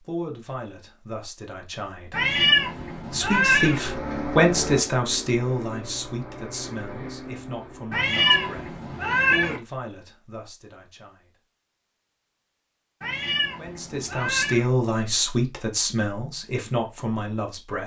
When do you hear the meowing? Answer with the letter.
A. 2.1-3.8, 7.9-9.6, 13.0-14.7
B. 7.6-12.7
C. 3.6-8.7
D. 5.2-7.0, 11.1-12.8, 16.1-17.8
A.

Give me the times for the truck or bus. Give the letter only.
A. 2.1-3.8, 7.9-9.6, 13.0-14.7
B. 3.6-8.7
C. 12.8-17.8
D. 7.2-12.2
B.